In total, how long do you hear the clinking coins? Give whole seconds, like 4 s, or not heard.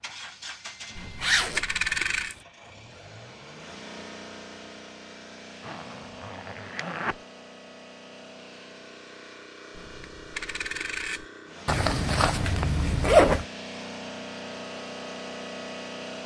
3 s.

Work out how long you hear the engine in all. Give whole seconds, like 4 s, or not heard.
16 s.